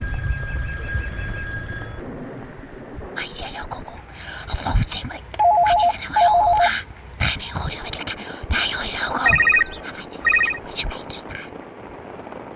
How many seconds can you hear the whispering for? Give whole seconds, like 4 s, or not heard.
8 s.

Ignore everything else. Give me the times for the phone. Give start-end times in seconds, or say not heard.
0.0-2.0, 4.9-6.7, 9.2-10.6.